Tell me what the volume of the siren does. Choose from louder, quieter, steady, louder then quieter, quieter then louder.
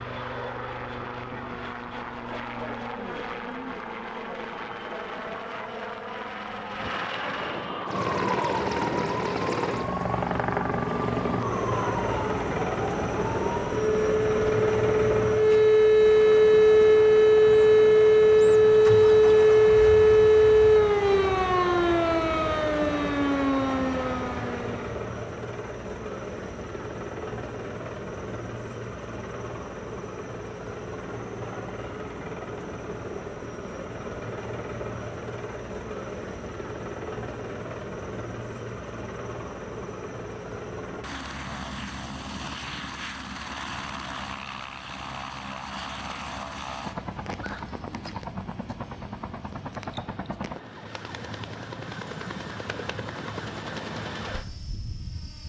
louder then quieter.